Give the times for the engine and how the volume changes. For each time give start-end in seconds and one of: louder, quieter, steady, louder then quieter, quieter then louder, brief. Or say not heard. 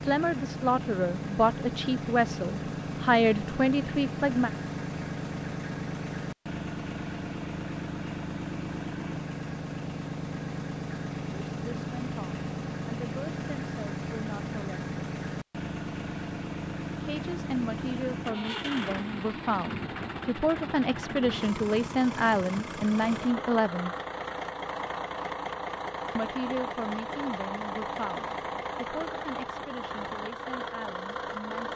0.0-31.7 steady.